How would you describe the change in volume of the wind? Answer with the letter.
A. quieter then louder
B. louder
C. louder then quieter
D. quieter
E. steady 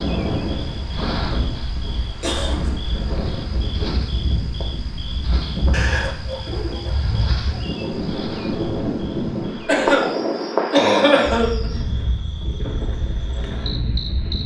C.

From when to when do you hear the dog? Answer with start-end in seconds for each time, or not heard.
6.0-7.5.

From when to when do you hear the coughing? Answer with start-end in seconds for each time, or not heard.
1.9-2.8, 5.7-6.8, 9.7-10.1, 10.7-11.7.